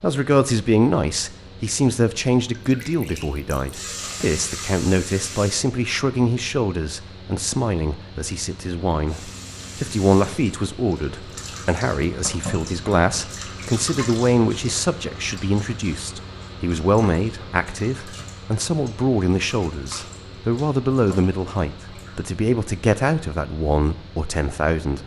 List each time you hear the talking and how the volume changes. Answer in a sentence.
The talking can be heard from 0.0 to 25.0 s, at a steady volume.